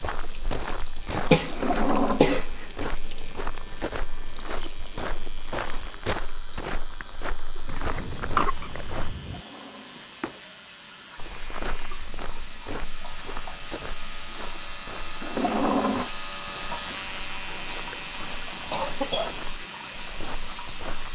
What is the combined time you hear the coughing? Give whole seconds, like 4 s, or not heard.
5 s.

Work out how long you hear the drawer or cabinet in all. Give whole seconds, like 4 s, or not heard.
3 s.